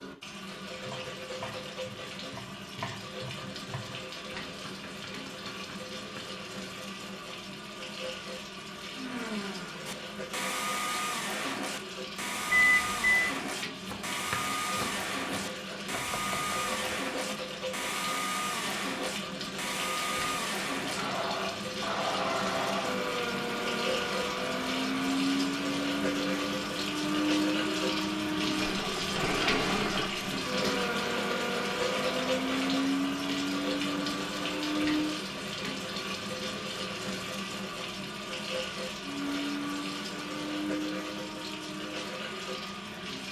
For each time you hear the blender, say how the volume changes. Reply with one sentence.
You can hear the blender from 8.9 to 35.2 s, at a steady volume; and from 39.0 to 43.2 s, getting quieter.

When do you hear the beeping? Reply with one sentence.
You can hear the beeping from 12.5 to 13.3 s.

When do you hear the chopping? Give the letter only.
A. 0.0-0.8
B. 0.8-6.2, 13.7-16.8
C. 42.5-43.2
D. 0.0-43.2
B.